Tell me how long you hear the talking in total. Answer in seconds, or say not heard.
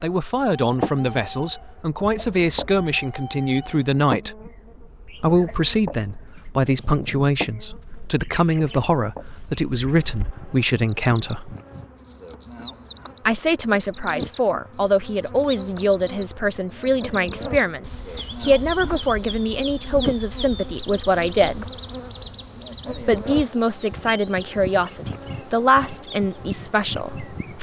24 s.